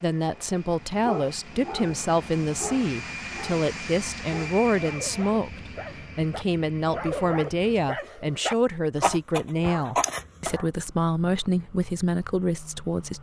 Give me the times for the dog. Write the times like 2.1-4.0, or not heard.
0.3-10.7.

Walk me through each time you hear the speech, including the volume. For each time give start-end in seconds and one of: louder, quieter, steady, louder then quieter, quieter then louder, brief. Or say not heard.
0.0-13.1 steady.